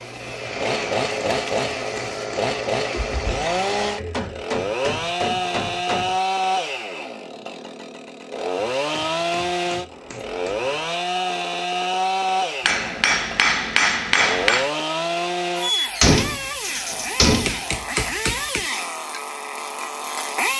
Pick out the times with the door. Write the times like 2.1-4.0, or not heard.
2.9-4.3, 9.9-10.8, 15.6-17.6.